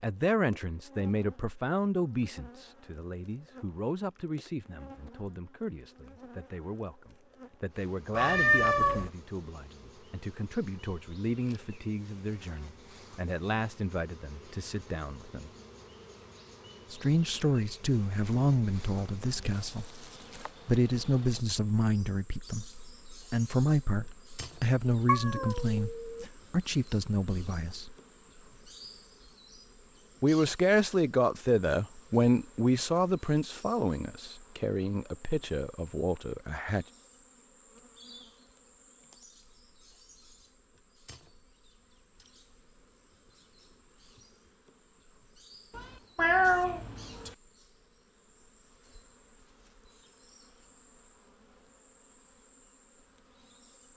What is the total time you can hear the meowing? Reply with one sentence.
The meowing can be heard for 4 seconds in total.